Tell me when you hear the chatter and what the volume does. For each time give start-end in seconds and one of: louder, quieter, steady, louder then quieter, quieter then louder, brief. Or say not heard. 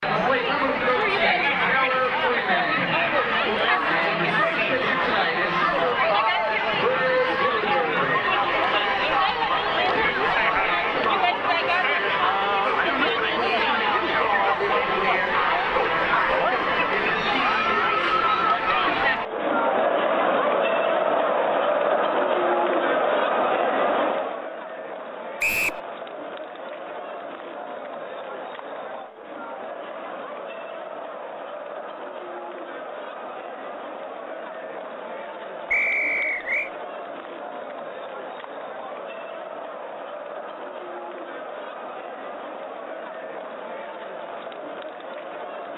0.0-45.7 quieter.